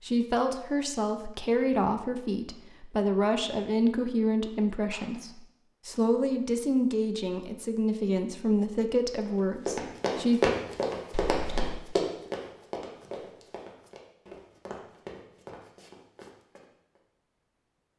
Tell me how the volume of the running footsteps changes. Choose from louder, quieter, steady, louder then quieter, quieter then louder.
quieter.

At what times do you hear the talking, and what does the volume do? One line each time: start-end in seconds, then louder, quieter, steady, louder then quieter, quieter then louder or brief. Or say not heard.
0.0-10.5 steady.